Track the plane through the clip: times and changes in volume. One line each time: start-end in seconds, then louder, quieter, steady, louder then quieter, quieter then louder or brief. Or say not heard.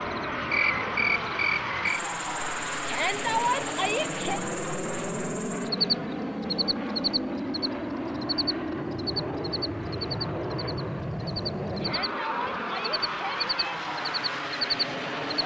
0.0-15.4 steady.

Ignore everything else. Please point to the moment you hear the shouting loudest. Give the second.
3 s.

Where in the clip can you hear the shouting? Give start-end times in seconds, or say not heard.
2.9-4.4, 11.8-13.8.